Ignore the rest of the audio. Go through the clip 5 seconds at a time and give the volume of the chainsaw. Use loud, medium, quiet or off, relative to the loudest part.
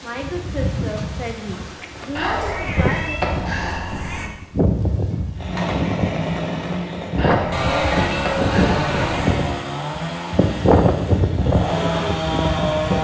off, loud, loud.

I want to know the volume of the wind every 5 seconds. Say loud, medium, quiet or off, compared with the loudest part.
medium, loud, loud.